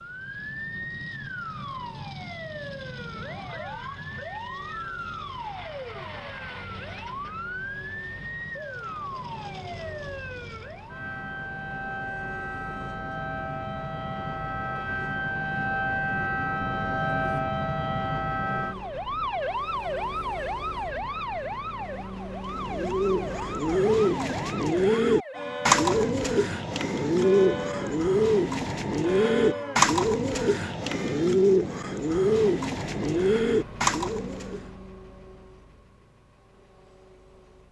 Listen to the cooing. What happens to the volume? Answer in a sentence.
The loudness of the cooing stays about the same.